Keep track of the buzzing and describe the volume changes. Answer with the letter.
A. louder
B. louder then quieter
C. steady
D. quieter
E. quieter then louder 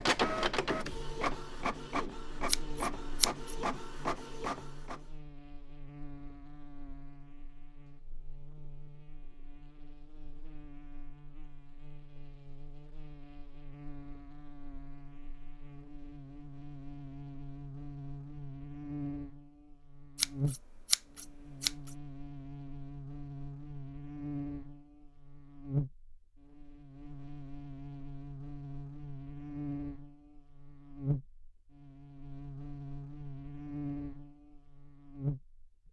A.